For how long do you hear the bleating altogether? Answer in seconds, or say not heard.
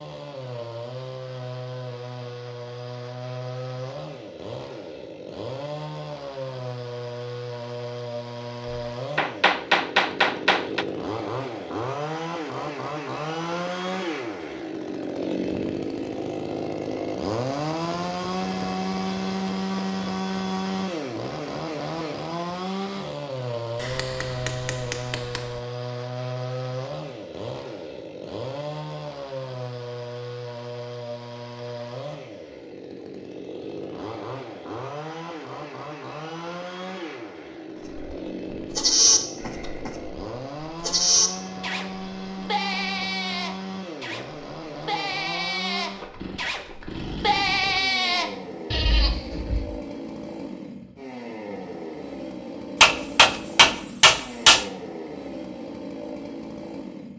11 s.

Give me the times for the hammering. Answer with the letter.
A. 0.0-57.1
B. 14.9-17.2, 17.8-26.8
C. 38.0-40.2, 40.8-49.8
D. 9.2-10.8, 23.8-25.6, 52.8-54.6
D.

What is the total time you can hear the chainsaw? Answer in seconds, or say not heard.
57 s.